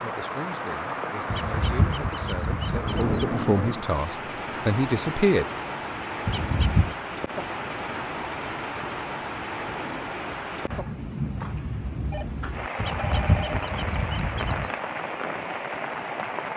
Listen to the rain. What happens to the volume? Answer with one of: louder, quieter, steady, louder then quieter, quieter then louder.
steady.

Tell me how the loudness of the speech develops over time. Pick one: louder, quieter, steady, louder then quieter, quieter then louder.
louder.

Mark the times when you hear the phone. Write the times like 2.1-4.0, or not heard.
12.1-13.7.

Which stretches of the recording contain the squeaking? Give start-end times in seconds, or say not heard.
1.2-3.3, 6.2-7.0, 12.8-14.7.